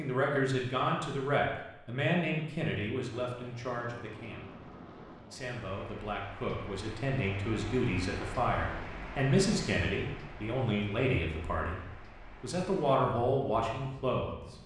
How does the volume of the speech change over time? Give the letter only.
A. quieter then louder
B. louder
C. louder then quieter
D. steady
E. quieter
A.